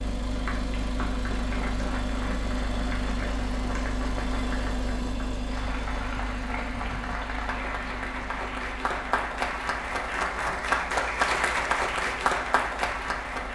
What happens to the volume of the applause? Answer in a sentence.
The volume of the applause goes up.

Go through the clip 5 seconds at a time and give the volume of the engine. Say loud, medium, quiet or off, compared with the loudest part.
loud, medium, quiet.